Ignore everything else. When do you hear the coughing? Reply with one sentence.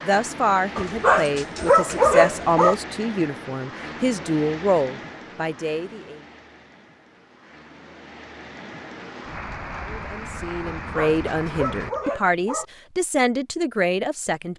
You can't hear the coughing here.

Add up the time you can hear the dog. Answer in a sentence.
The dog can be heard for 4 seconds in total.